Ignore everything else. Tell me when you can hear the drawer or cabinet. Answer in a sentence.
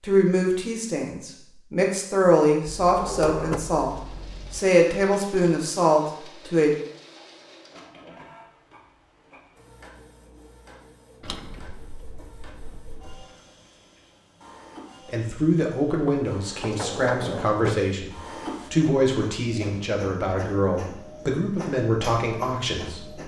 The drawer or cabinet can be heard from 2.6 to 4.6 s, from 11.2 to 13.2 s and from 16.1 to 17.9 s.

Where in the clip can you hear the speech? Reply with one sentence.
You can hear the speech from 0.0 to 6.7 s and from 15.1 to 23.2 s.